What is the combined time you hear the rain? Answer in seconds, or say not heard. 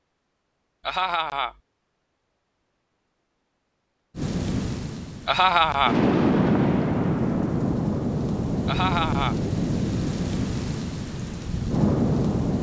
8 s.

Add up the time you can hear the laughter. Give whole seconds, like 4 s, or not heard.
2 s.